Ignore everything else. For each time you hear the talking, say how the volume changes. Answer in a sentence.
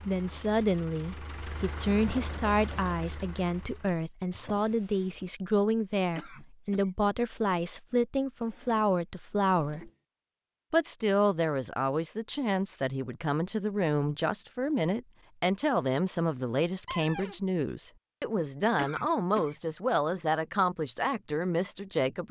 The talking can be heard from 0.1 to 9.9 s, at a steady volume; and from 10.7 to 22.2 s, at a steady volume.